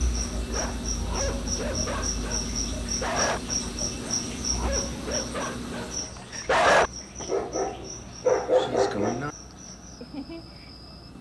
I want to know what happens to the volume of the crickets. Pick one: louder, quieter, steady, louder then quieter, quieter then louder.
quieter.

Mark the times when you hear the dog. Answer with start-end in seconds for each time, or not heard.
0.1-9.3.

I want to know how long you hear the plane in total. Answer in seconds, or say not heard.
11 s.